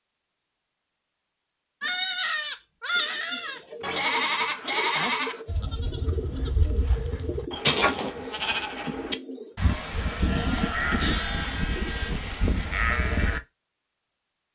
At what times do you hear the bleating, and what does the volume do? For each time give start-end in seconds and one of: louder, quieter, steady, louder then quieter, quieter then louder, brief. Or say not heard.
1.8-13.4 steady.